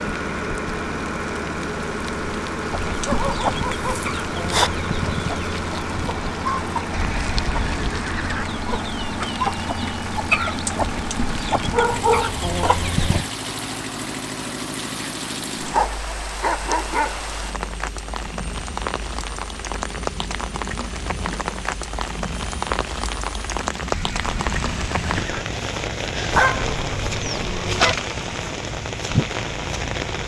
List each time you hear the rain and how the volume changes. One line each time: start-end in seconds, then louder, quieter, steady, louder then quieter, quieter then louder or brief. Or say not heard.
0.0-30.2 louder.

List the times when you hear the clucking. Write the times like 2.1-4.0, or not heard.
2.7-13.2.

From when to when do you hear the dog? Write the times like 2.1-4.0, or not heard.
3.0-4.7, 11.7-12.4, 15.7-17.2, 26.3-27.9.